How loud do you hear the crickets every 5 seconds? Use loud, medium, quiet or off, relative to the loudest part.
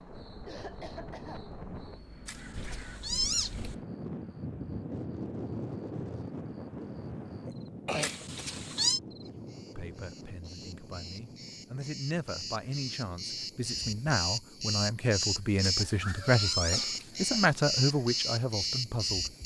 quiet, quiet, medium, loud.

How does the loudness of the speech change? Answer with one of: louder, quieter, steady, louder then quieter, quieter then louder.
louder.